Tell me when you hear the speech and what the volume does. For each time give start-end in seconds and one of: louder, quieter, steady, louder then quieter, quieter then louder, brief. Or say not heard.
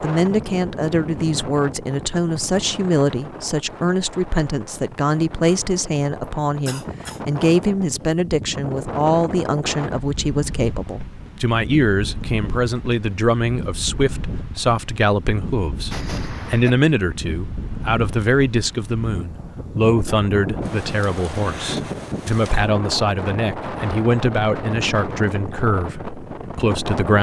0.0-27.1 steady.